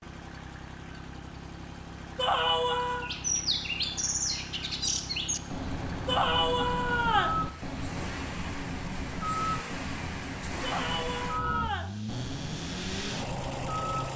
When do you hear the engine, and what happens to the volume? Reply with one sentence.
The engine can be heard from 0.0 to 14.1 s, getting louder.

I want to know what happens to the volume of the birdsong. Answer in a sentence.
The loudness of the birdsong goes down.